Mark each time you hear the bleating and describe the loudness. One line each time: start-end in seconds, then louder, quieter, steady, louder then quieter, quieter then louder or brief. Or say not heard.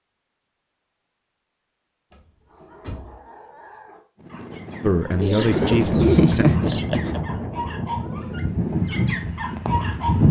not heard.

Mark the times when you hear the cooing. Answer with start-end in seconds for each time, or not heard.
5.2-7.2.